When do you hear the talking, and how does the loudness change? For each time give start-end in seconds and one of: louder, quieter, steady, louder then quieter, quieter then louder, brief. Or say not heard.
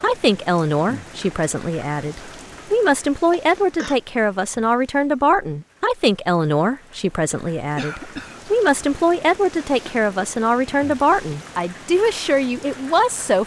0.0-13.4 steady.